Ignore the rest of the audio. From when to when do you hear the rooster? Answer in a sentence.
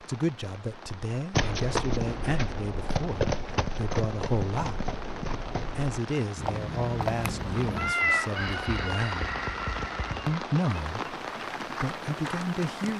You can hear the rooster from 8.1 to 10.3 s.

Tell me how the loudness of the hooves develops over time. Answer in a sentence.
The volume of the hooves goes down.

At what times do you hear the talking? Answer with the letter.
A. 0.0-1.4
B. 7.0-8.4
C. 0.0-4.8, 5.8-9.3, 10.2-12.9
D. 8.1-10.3
C.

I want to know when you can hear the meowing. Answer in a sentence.
You can hear the meowing from 7.0 to 8.4 s.